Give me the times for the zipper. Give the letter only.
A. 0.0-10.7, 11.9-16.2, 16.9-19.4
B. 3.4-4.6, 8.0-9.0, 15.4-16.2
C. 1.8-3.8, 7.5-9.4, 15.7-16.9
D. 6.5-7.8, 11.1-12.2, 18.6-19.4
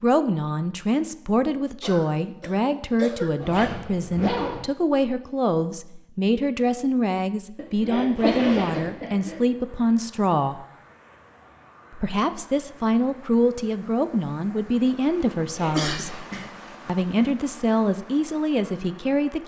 B.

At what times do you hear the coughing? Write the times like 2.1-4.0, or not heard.
1.8-3.8, 7.5-9.4, 15.7-16.9.